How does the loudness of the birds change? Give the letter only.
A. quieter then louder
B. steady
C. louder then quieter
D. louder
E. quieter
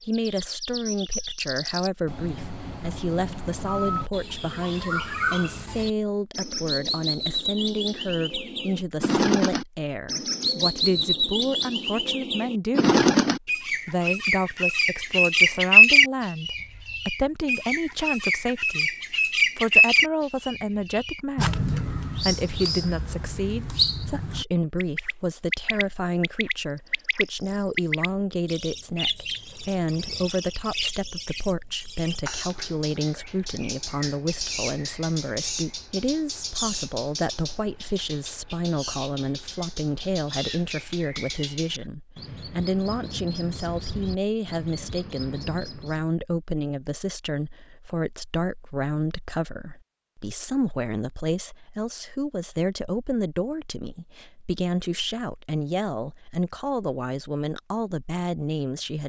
C.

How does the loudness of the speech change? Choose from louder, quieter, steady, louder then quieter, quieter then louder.
steady.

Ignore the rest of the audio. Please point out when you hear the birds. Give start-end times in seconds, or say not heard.
0.0-46.1.